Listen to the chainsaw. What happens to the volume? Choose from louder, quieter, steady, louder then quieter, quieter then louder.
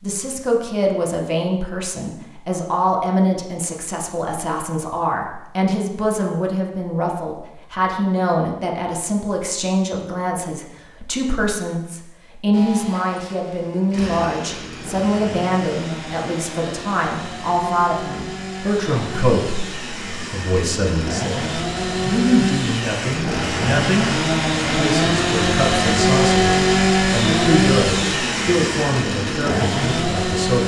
louder.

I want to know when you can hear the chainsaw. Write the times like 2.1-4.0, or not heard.
12.5-30.6.